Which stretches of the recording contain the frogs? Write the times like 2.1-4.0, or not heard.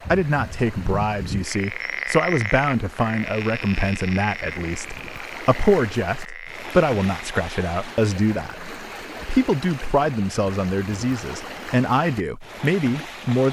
0.0-7.2.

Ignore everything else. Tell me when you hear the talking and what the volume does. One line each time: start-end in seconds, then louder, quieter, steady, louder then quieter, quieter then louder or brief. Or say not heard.
0.1-13.4 steady.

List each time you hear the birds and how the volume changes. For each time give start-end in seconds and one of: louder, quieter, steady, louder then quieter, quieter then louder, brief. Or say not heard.
not heard.